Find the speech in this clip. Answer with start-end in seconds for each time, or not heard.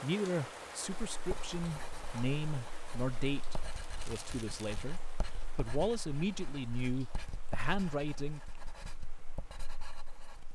0.0-8.4.